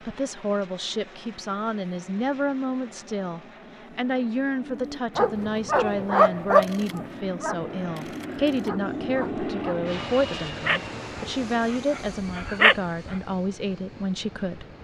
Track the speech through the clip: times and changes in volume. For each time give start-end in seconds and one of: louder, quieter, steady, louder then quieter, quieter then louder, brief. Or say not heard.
0.0-14.7 steady.